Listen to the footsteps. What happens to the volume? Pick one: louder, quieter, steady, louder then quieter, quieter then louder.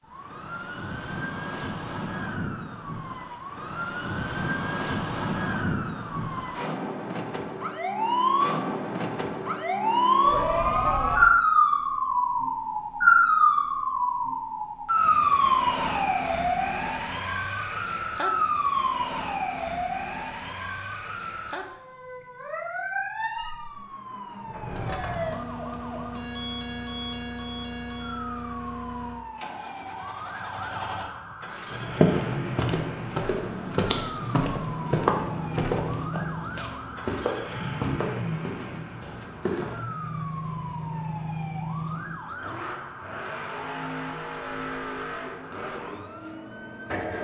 quieter.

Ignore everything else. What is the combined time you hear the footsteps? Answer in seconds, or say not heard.
8 s.